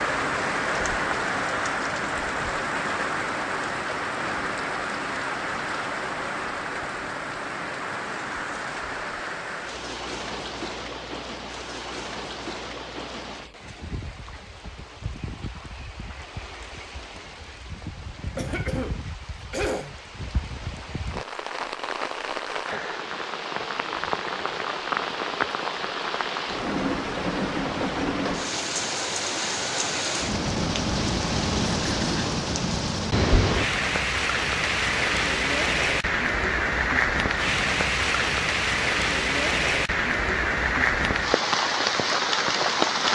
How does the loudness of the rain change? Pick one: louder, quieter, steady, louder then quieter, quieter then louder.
quieter then louder.